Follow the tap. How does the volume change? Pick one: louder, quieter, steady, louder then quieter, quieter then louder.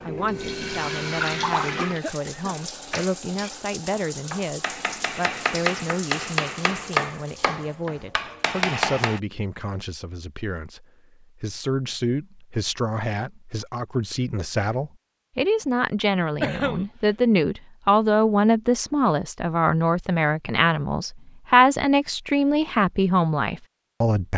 quieter.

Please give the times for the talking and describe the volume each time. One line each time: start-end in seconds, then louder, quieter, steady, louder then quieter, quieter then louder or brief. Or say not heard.
0.0-24.3 louder.